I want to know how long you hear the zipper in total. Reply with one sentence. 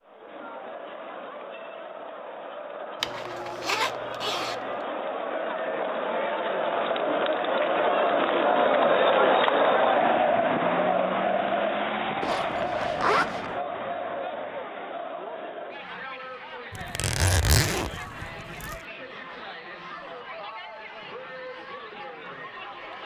The zipper can be heard for 4 seconds in total.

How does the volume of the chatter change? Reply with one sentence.
The volume of the chatter goes up, then down.